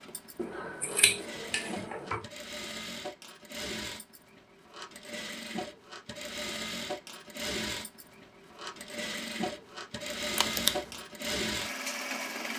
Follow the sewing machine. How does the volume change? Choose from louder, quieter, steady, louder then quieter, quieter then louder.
louder.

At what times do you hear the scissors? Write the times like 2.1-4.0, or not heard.
0.3-2.2, 10.3-10.9.